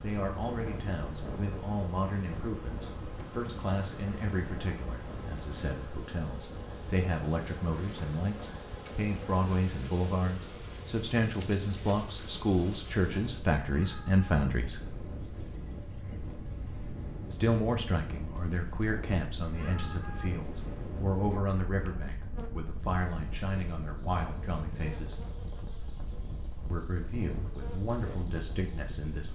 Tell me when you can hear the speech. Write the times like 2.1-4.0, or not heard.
0.0-14.8, 17.3-25.2, 26.7-29.3.